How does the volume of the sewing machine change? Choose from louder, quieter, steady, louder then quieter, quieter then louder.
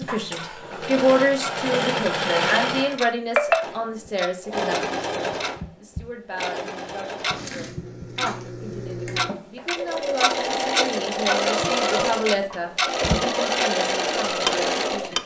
quieter then louder.